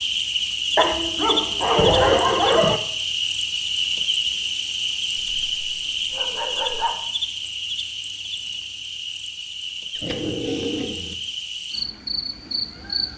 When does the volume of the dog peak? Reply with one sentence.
The loudest moment of the dog is at 2 seconds.